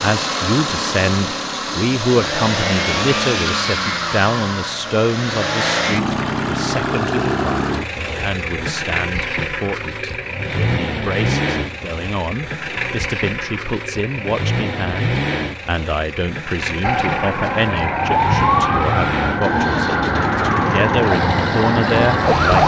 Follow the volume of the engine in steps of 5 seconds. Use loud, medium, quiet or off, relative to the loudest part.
loud, loud, loud, loud, medium.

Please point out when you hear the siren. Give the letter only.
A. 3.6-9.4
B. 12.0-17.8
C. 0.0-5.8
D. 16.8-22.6
D.